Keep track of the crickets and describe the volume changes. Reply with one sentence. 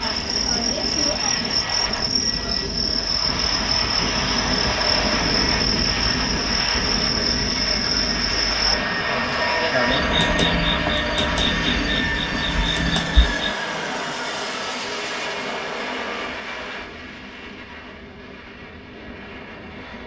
The volume of the crickets stays about the same.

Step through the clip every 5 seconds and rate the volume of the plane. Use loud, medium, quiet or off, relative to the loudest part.
loud, loud, loud, medium.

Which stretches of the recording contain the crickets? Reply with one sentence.
The crickets can be heard from 0.0 to 13.6 s.